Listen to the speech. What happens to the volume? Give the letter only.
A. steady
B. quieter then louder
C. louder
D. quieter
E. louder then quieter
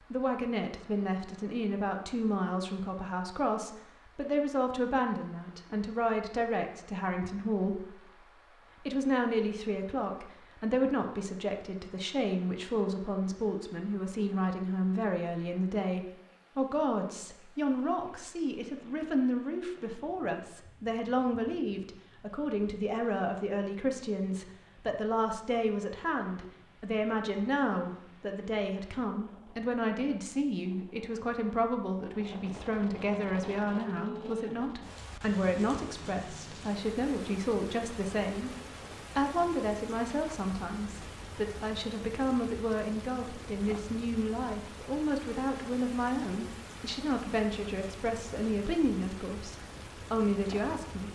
A.